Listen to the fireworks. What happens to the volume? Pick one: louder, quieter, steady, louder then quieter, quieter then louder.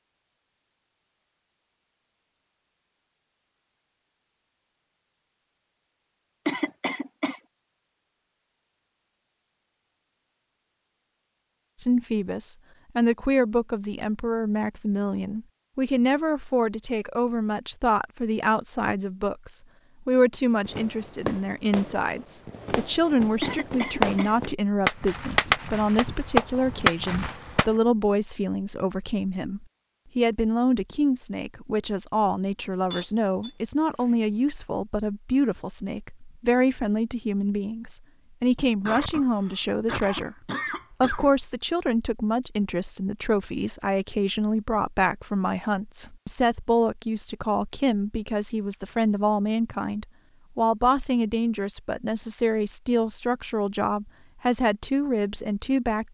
louder.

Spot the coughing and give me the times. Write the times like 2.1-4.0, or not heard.
6.5-7.4, 23.4-24.4, 38.9-41.4.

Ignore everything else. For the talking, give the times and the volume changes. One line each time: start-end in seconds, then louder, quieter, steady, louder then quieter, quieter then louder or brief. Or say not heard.
11.8-40.4 steady
41.0-56.0 steady.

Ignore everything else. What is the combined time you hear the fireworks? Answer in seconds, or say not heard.
7 s.